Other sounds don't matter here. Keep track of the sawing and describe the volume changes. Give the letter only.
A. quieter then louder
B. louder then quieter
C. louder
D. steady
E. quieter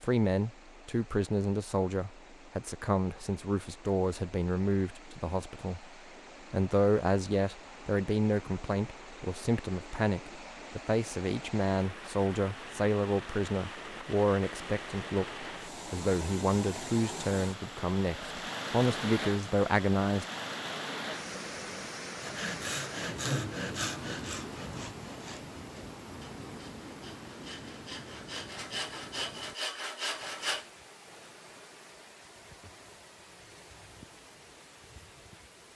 A.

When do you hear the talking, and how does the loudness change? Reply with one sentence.
The talking can be heard from 0.0 to 5.8 s, at a steady volume; and from 6.5 to 20.2 s, at a steady volume.